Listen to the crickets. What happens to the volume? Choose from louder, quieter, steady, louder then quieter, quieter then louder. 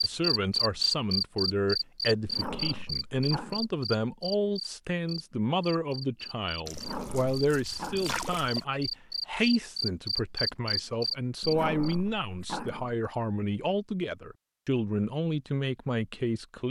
quieter then louder.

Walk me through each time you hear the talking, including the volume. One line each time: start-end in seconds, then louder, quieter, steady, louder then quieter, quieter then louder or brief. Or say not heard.
0.0-16.6 steady.